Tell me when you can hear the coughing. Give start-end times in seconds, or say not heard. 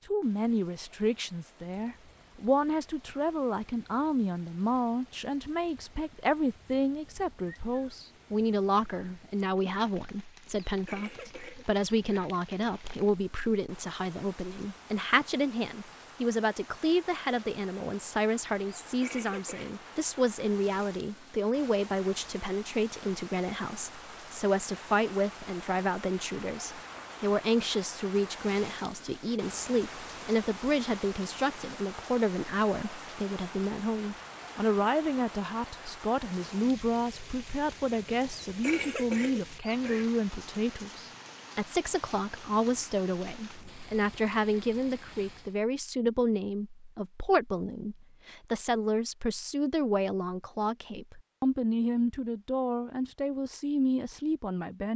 10.4-12.3, 18.8-19.8, 38.2-40.0.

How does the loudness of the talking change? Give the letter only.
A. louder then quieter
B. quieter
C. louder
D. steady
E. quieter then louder
D.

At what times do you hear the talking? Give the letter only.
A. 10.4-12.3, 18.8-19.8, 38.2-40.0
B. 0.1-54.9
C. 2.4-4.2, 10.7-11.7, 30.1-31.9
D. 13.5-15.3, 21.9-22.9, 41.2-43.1
B.